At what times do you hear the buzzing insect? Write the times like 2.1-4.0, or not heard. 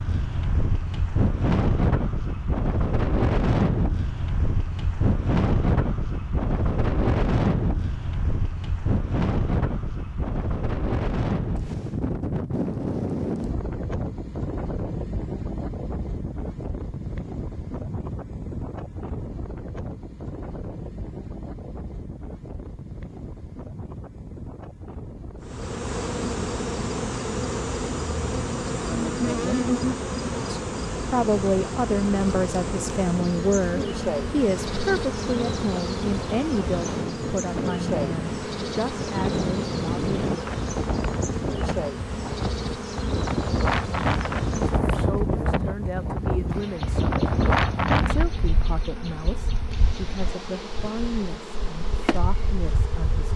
25.4-53.3.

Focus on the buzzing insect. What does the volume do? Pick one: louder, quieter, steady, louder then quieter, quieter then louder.
quieter.